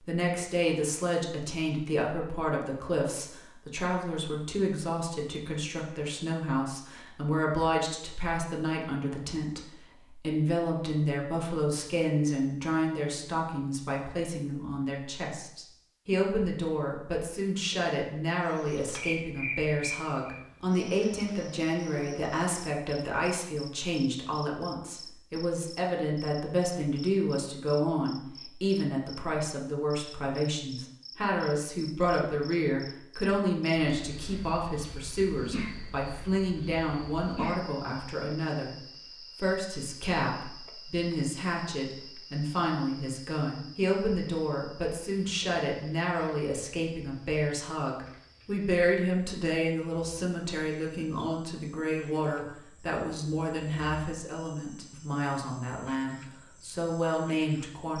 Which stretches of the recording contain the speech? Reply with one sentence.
You can hear the speech from 0.0 to 57.9 s.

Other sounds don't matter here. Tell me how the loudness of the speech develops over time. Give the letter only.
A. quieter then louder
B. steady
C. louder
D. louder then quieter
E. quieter
B.